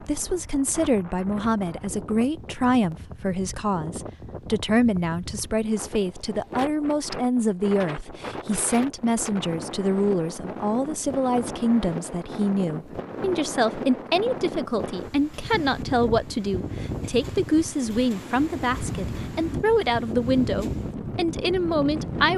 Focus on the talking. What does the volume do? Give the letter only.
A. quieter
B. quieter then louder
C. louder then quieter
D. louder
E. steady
E.